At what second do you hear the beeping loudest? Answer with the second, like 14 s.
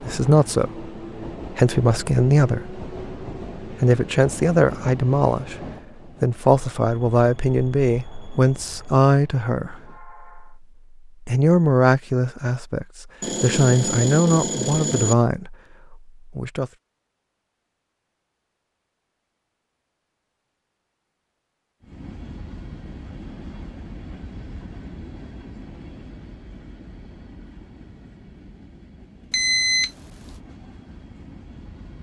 30 s.